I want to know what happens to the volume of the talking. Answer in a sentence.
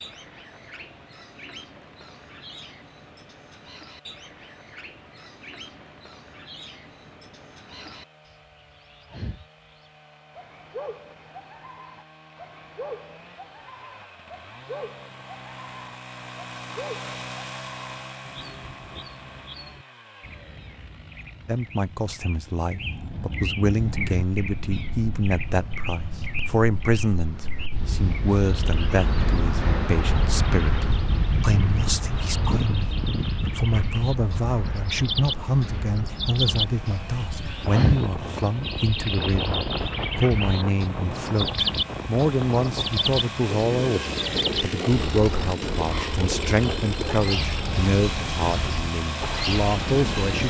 The volume of the talking stays about the same.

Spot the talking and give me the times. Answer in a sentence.
The talking can be heard from 21.4 to 50.4 s.